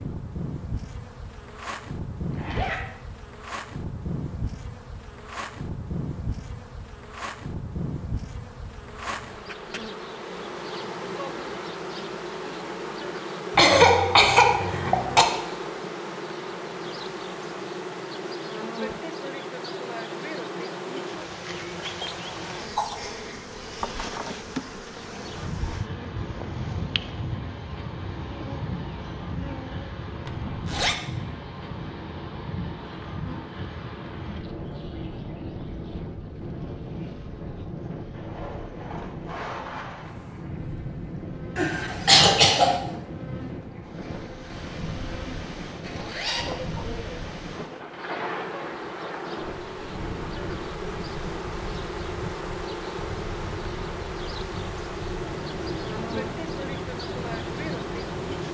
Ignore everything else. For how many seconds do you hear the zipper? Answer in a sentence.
The zipper can be heard for 2 seconds in total.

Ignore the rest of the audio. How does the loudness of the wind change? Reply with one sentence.
The loudness of the wind stays about the same.